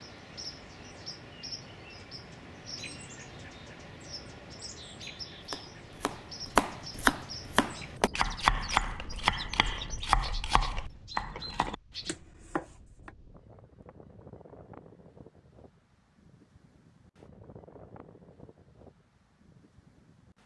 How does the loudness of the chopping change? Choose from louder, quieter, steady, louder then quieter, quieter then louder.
quieter.